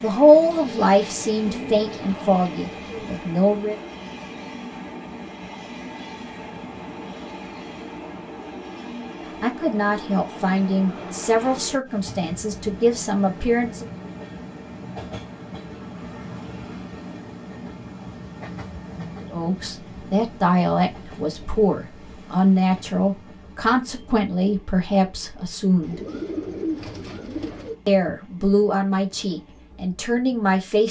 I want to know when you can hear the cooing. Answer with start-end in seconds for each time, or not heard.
0.5-3.2, 25.8-27.8.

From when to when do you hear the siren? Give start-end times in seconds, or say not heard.
not heard.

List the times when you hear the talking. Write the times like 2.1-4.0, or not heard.
0.0-3.8, 9.4-13.8, 19.2-26.0, 27.9-30.8.